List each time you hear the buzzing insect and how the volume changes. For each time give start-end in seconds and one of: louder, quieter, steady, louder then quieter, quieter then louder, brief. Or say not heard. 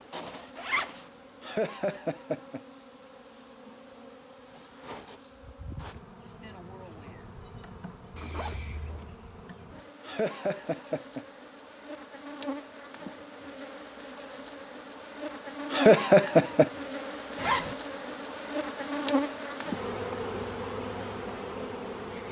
0.0-22.2 louder.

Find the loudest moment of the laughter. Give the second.
16 s.